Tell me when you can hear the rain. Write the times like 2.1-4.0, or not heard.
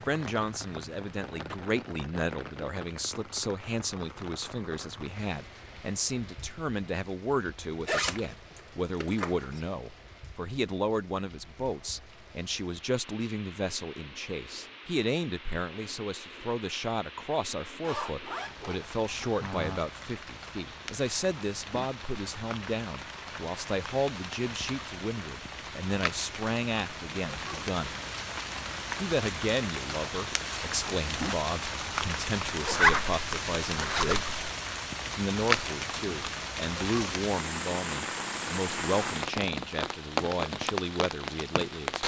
0.0-42.0.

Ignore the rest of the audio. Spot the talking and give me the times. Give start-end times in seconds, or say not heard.
0.1-27.9, 28.9-34.2, 35.0-42.0.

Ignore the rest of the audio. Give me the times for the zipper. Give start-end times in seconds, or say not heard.
7.8-9.6, 17.8-19.8, 32.6-34.2.